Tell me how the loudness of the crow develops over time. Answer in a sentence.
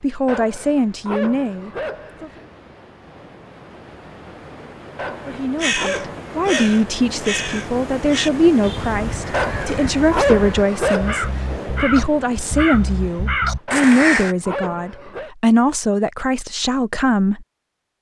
The loudness of the crow goes down, then up.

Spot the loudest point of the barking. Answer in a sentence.
The volume of the barking peaks at 10 seconds.